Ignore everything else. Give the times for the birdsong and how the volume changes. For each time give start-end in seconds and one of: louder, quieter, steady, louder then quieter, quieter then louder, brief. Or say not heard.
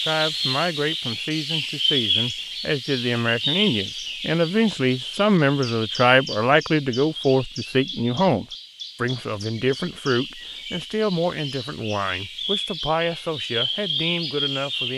0.0-14.9 quieter then louder.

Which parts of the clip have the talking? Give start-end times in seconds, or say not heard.
0.0-14.9.